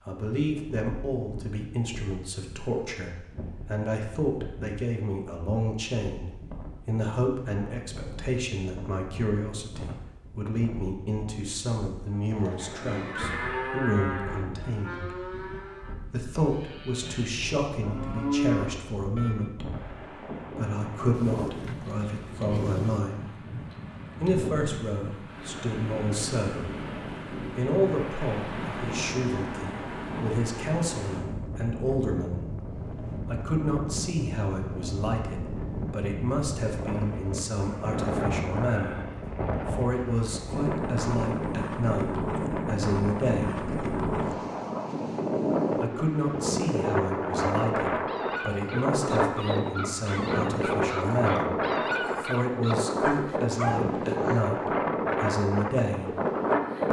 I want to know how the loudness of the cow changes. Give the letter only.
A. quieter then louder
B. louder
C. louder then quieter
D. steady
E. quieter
A.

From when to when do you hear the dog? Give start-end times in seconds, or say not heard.
47.9-54.5.